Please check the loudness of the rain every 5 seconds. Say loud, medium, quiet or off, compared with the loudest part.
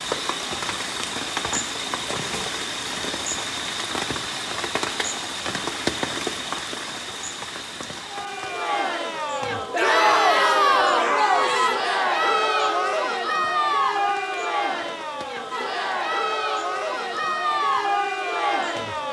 loud, loud, quiet, quiet.